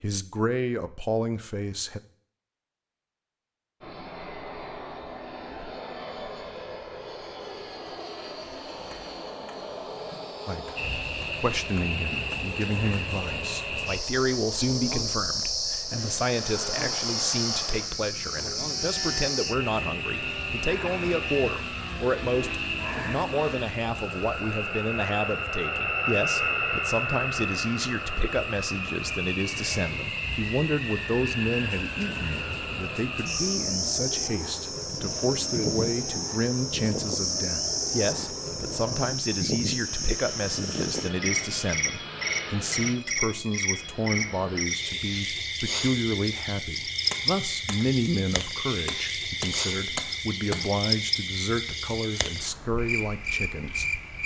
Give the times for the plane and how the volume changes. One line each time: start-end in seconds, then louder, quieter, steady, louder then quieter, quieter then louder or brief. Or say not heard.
3.8-44.6 louder then quieter.